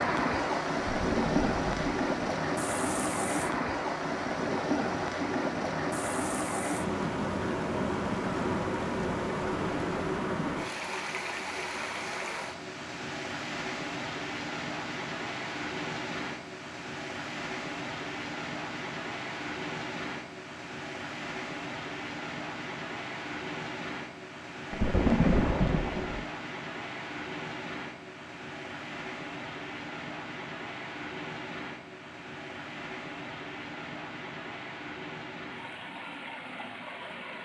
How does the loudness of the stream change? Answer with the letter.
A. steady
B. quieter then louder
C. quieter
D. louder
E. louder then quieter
C.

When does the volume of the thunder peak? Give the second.
25 s.